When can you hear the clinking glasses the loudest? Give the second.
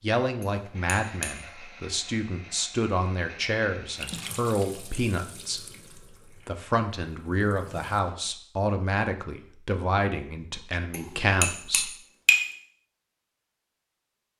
12 s.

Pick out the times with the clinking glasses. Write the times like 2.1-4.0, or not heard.
0.4-1.4, 10.9-12.4.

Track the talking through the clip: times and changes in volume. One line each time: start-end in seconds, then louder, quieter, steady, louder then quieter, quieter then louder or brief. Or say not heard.
0.0-11.9 steady.